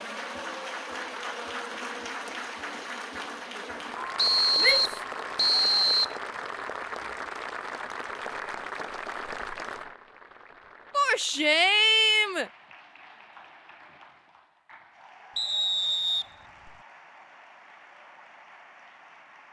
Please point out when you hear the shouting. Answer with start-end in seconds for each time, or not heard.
4.5-5.0, 10.9-12.5.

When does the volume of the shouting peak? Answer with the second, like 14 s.
12 s.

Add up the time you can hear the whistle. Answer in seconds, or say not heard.
3 s.